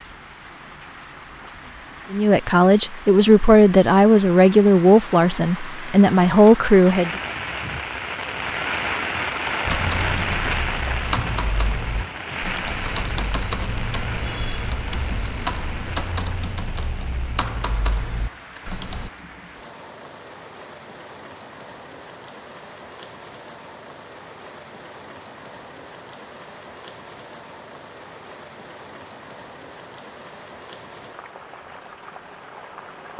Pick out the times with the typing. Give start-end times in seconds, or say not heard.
9.7-19.1.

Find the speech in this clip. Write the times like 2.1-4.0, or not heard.
2.1-7.1.